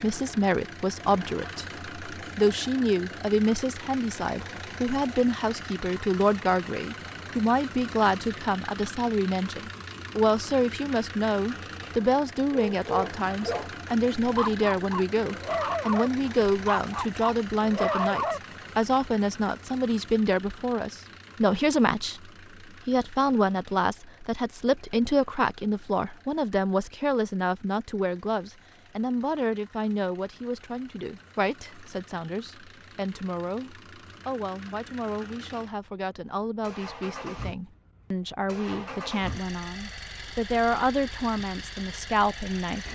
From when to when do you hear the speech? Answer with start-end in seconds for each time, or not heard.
0.0-42.9.